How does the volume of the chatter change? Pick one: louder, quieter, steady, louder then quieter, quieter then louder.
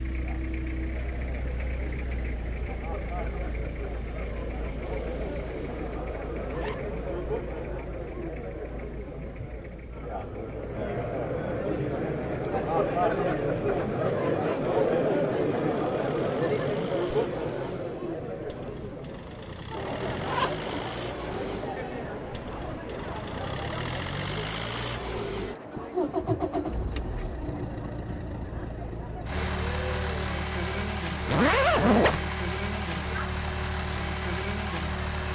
louder then quieter.